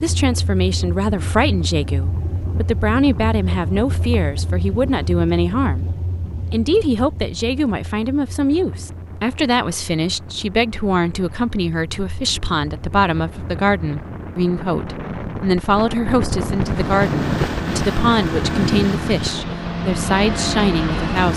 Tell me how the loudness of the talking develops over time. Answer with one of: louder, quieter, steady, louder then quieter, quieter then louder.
steady.